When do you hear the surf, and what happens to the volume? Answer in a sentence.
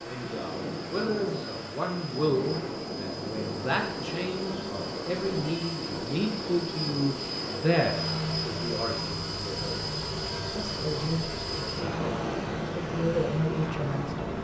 You can hear the surf from 0.0 to 14.3 s, at a steady volume.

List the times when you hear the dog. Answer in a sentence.
You can't hear the dog here.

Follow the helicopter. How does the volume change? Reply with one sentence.
The loudness of the helicopter goes up.